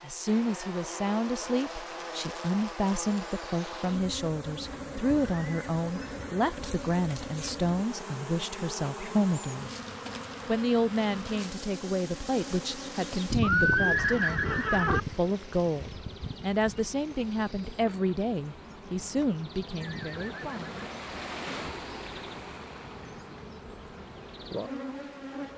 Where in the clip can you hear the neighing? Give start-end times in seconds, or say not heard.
4.7-6.5, 13.4-15.0, 19.8-20.9.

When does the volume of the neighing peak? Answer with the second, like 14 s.
14 s.